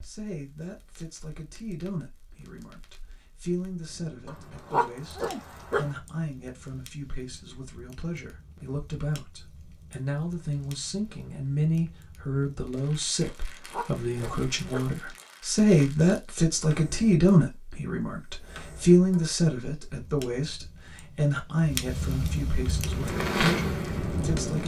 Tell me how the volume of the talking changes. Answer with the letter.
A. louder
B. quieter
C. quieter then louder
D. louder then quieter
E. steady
D.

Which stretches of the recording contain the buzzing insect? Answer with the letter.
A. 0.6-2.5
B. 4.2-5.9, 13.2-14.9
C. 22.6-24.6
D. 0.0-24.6
C.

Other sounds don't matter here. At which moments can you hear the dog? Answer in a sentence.
The dog can be heard from 4.2 to 5.9 s and from 13.2 to 14.9 s.